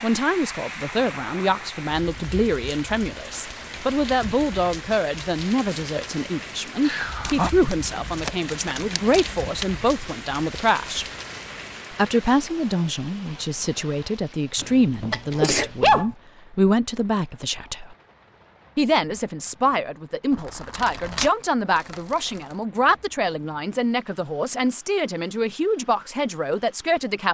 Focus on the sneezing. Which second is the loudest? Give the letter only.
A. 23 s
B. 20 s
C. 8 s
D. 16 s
D.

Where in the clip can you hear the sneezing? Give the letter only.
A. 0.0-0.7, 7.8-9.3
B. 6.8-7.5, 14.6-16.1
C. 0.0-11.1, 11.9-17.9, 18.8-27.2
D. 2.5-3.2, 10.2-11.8
B.